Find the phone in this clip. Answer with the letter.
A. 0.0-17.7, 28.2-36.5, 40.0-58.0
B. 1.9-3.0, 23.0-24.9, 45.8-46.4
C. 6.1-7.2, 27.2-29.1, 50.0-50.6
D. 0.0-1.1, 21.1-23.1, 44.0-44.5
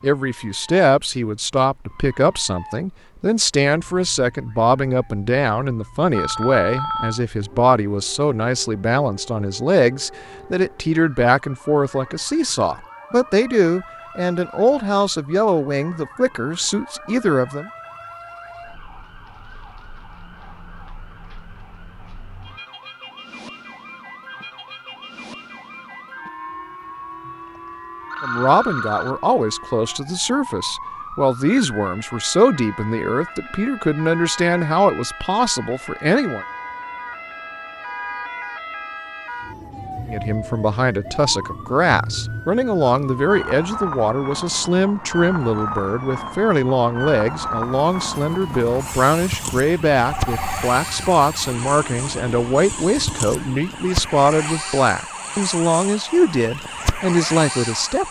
C.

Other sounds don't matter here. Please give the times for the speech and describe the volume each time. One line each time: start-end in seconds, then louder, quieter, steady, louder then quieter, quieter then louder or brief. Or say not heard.
0.0-17.7 steady
28.2-36.5 steady
40.0-58.0 steady.